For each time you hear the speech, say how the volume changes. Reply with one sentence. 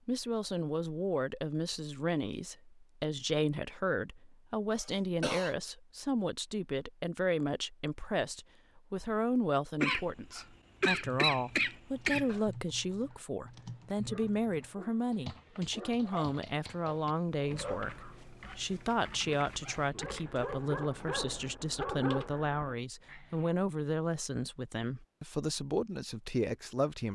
The speech can be heard from 0.1 to 27.1 s, at a steady volume.